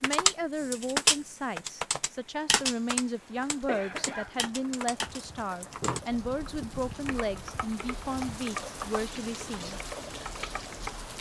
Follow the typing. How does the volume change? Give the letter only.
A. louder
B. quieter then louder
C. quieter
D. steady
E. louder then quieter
C.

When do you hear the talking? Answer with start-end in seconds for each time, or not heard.
0.0-9.8.